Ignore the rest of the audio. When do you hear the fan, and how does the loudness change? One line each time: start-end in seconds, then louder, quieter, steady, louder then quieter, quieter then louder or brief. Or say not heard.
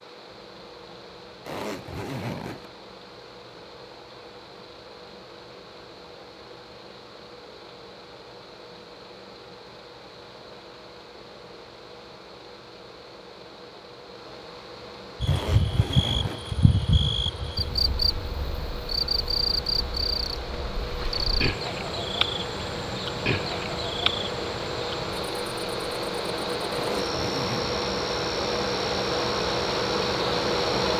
0.0-30.9 louder.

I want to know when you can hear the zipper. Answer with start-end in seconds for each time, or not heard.
1.4-2.7, 15.2-16.5, 26.7-27.8.